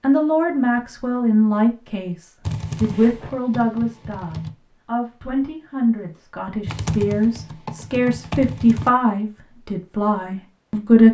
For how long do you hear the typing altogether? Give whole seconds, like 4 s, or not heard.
4 s.